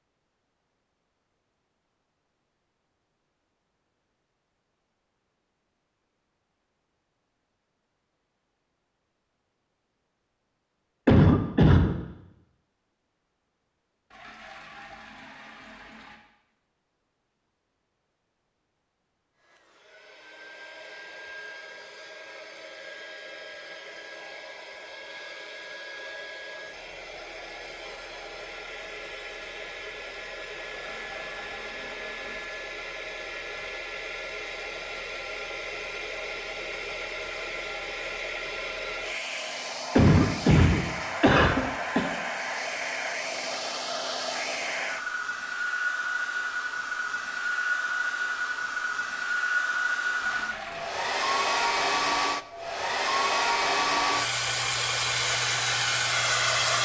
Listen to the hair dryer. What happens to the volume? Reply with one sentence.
The volume of the hair dryer goes up.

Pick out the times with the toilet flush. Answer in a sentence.
The toilet flush can be heard from 14.1 to 16.2 s, from 30.7 to 32.5 s and from 50.2 to 50.9 s.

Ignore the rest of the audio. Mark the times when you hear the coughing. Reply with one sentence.
You can hear the coughing from 11.1 to 11.9 s and from 40.0 to 42.1 s.